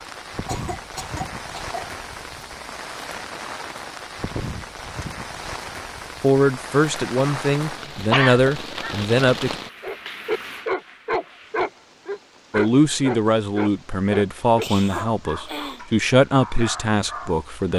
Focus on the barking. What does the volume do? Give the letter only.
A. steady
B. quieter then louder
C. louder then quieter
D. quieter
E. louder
D.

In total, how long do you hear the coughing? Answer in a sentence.
You can hear the coughing for 4 seconds altogether.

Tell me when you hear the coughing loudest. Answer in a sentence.
The loudest moment of the coughing is at 8 seconds.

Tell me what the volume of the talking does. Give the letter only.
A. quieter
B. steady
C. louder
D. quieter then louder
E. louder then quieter
B.